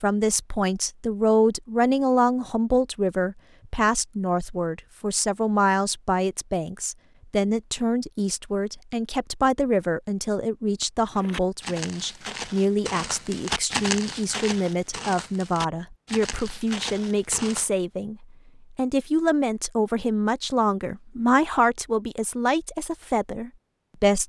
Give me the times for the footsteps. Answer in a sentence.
The footsteps can be heard from 11.1 to 17.7 s.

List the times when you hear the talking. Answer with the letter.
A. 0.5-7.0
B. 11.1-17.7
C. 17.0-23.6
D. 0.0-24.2
D.